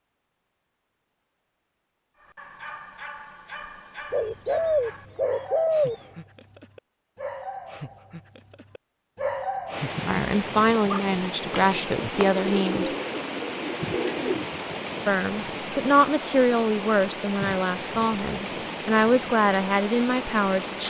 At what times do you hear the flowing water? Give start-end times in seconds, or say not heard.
9.7-20.8.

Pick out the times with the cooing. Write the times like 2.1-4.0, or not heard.
4.1-6.0, 11.5-14.4.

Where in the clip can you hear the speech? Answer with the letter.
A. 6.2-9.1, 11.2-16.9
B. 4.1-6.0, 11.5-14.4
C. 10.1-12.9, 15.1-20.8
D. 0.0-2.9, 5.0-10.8
C.